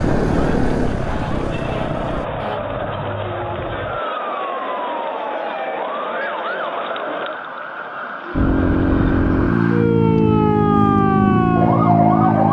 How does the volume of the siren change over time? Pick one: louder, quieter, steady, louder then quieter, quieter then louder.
louder.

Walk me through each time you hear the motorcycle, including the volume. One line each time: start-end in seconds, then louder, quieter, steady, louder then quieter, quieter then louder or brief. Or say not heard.
0.0-2.3 brief
8.3-12.4 steady.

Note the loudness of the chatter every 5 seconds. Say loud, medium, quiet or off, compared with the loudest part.
loud, loud, off.